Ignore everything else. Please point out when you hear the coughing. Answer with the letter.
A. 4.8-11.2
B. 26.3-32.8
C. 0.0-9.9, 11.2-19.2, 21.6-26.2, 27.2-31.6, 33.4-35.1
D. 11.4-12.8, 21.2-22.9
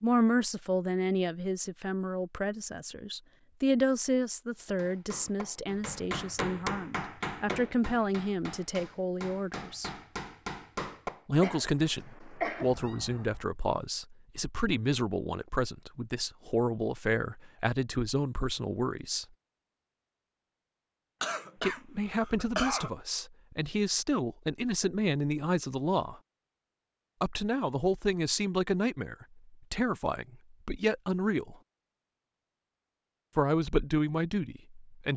D.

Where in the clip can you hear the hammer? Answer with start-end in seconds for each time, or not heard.
4.8-11.2.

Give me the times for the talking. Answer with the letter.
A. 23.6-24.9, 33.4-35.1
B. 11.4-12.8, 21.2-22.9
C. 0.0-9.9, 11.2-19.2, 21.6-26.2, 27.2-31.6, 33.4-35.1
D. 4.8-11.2
C.